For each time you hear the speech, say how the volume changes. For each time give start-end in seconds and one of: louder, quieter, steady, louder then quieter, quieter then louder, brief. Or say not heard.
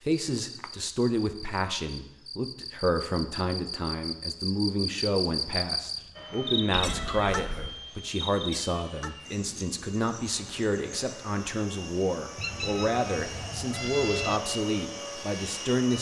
0.0-15.9 steady.